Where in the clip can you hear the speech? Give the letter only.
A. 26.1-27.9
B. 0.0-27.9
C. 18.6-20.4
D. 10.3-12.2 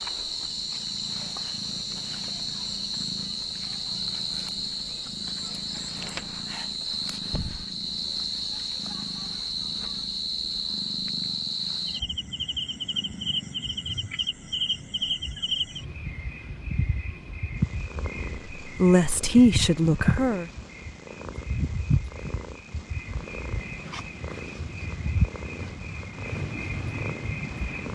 C.